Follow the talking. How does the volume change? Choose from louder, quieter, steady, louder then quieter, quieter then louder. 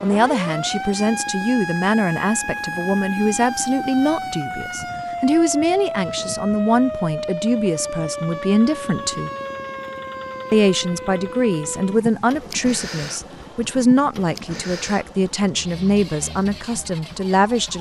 steady.